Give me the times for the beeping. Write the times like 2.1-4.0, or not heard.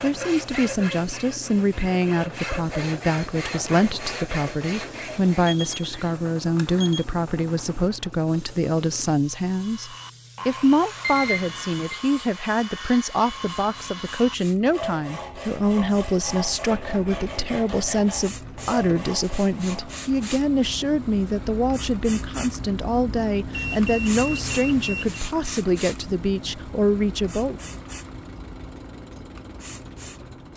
5.5-7.0, 11.0-12.0, 23.5-25.2.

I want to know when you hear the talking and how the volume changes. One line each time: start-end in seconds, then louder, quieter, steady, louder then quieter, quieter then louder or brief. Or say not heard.
0.0-27.6 steady.